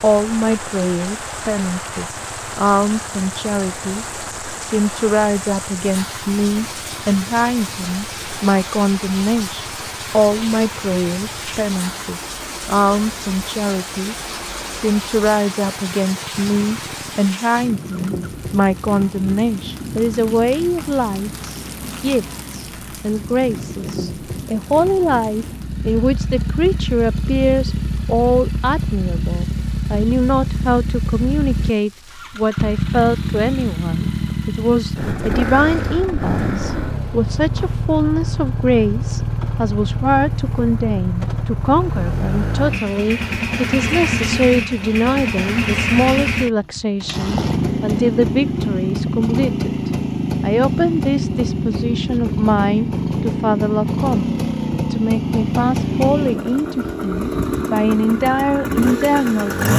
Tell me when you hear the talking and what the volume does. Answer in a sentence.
You can hear the talking from 0.0 to 59.5 s, at a steady volume.